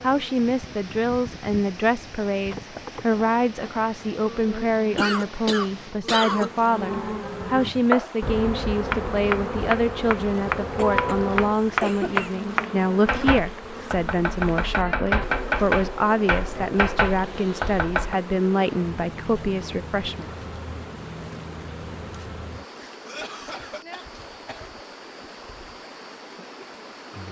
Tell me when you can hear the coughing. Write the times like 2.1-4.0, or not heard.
5.0-6.5, 10.7-12.3, 23.1-24.7.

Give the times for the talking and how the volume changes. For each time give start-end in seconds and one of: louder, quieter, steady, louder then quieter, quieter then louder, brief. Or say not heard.
0.0-20.3 steady.